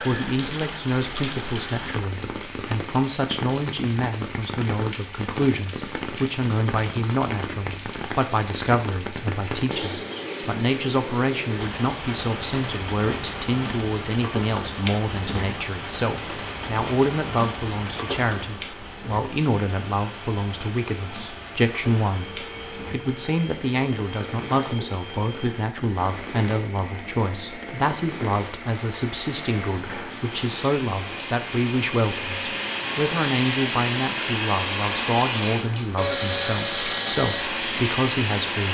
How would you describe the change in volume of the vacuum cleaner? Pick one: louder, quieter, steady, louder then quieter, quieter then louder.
louder.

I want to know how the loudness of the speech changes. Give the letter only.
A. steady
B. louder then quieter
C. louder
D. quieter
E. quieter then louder
A.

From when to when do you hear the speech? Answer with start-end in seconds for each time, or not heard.
0.0-38.6.